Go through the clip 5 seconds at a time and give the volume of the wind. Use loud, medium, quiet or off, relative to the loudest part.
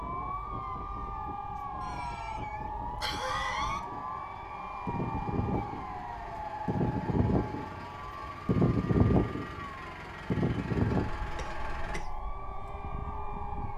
quiet, loud, loud.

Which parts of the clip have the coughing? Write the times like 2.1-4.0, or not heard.
1.8-3.8, 11.3-12.1.